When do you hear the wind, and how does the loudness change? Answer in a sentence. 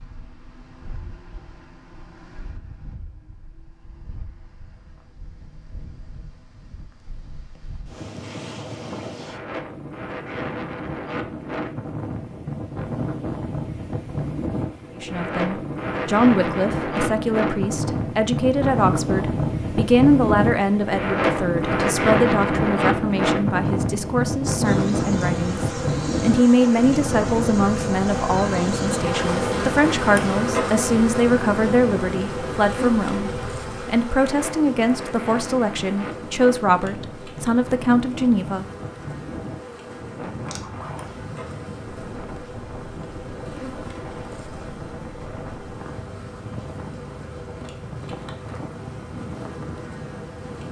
The wind can be heard from 0.0 to 50.6 s, getting louder then quieter.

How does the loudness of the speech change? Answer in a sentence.
The loudness of the speech stays about the same.